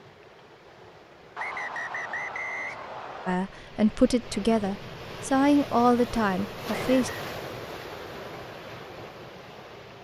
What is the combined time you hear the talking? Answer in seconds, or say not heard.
4 s.